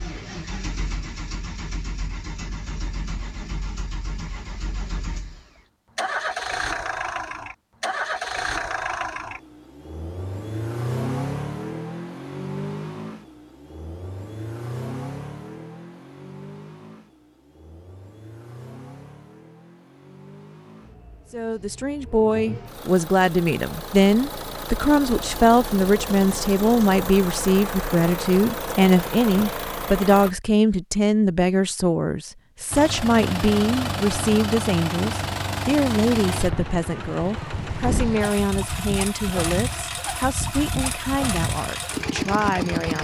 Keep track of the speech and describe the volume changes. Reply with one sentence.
The volume of the speech goes down.